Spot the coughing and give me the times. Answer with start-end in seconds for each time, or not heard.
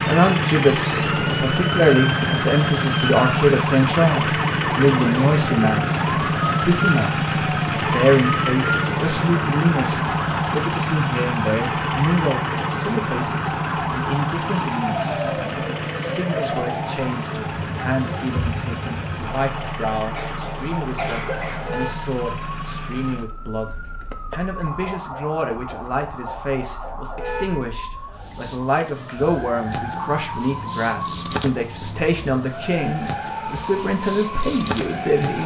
20.1-21.8.